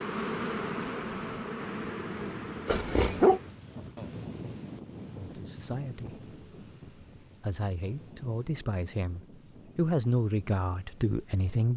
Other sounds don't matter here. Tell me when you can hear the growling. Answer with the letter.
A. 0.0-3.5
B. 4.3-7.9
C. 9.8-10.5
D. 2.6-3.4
D.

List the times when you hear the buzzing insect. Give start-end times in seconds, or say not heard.
0.0-3.5.